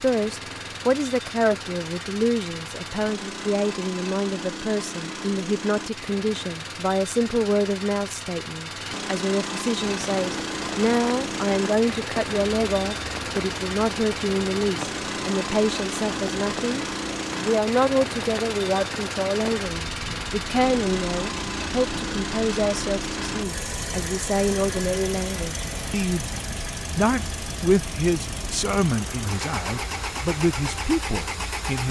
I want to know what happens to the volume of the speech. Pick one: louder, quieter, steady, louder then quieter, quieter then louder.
steady.